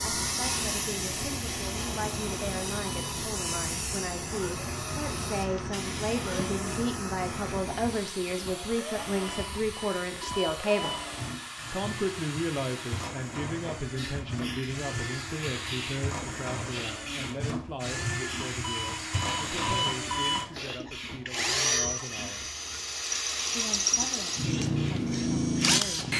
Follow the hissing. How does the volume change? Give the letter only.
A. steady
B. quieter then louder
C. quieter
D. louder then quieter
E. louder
C.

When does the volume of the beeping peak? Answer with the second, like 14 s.
20 s.